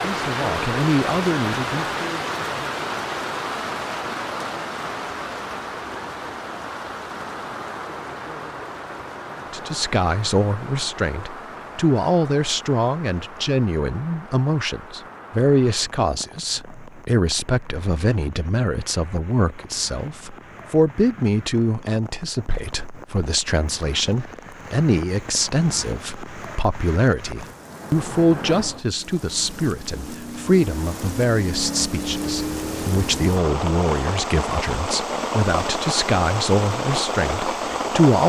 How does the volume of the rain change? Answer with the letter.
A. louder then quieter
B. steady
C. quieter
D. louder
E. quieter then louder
E.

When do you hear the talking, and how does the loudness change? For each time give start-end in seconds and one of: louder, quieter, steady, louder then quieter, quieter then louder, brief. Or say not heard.
0.0-2.3 brief
9.5-38.2 steady.